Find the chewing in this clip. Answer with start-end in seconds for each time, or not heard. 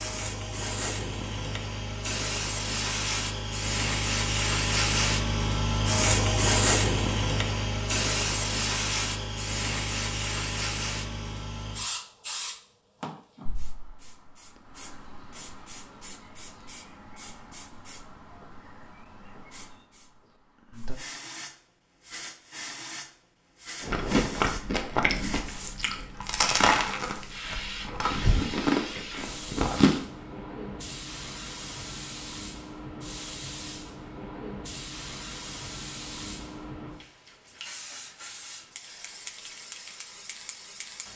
23.8-30.0.